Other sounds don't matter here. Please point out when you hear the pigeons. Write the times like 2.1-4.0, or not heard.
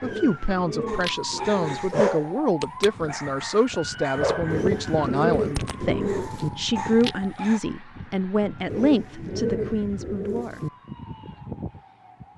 0.0-2.0, 4.5-6.5, 8.7-10.7.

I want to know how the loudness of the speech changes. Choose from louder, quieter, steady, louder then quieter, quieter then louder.
steady.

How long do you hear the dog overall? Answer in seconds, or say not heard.
7 s.